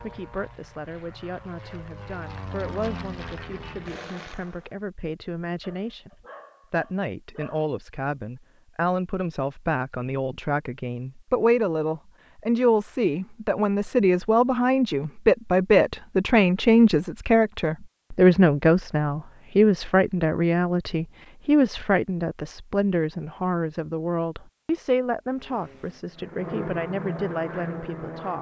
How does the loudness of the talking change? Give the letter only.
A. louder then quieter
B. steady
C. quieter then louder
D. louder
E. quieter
A.